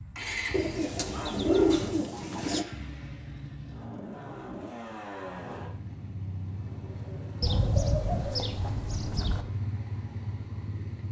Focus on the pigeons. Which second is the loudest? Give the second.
2 s.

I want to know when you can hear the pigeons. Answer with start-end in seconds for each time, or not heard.
0.5-2.6, 7.4-9.4.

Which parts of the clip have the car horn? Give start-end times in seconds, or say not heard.
not heard.